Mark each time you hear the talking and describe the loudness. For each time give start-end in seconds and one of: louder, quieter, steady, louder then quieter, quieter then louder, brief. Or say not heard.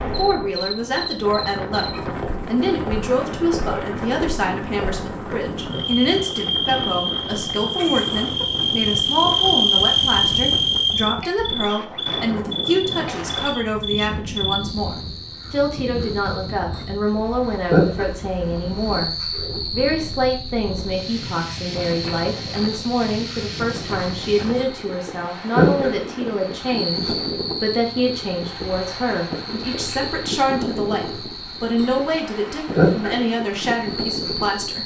0.0-34.8 steady.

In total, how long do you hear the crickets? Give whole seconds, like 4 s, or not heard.
35 s.